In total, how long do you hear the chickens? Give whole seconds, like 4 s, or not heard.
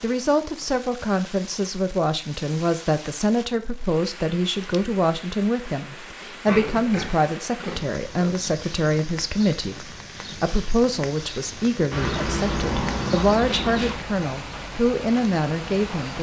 2 s.